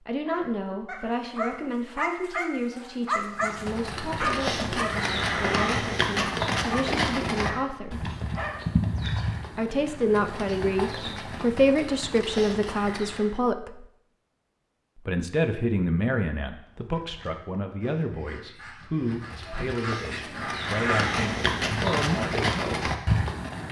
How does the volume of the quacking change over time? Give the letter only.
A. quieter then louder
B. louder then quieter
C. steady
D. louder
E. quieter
D.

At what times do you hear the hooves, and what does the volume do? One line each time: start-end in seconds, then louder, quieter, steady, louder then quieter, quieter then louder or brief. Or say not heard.
3.4-13.4 quieter
19.0-23.6 louder.